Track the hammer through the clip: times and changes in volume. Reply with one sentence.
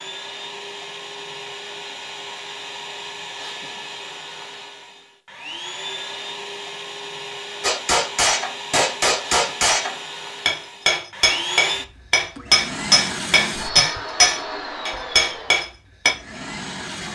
You can hear the hammer from 7.6 to 16.1 s, at a steady volume.